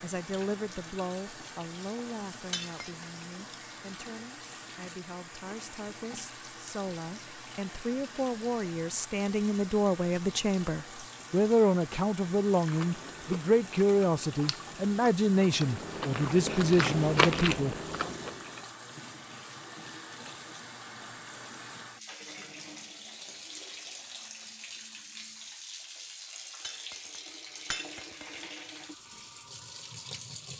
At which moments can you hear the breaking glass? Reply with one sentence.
You can hear the breaking glass from 2.5 to 3.0 s and from 26.6 to 28.4 s.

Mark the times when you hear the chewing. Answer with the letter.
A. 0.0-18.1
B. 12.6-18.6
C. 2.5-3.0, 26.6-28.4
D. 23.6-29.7
B.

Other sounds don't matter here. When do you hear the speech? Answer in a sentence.
The speech can be heard from 0.0 to 18.1 s.